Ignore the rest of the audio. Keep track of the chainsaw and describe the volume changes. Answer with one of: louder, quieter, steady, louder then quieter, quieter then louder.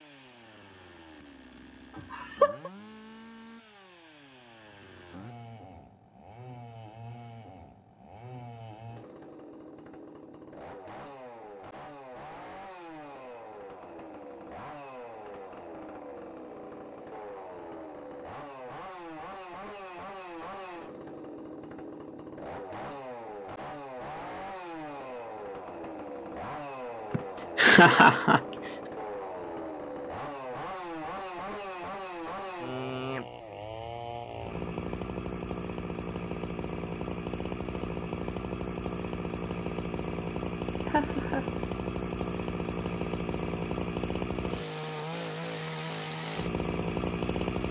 louder.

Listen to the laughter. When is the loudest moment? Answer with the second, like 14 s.
28 s.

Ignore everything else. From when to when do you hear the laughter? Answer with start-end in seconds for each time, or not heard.
1.9-2.7, 27.1-28.4, 40.9-41.5.